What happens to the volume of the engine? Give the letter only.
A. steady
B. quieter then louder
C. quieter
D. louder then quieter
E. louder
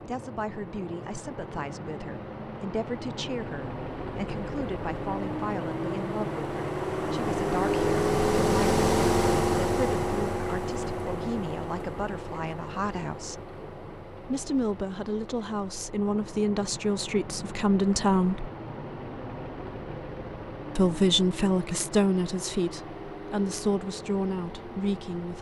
D.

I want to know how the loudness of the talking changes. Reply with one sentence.
The volume of the talking goes up.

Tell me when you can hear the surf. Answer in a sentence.
The surf can't be heard in this clip.